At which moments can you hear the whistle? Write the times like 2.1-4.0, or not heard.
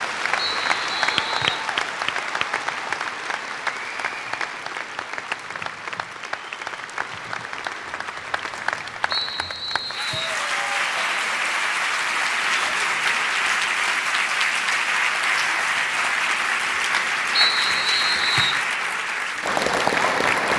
0.4-1.6, 9.1-10.4, 17.4-18.6.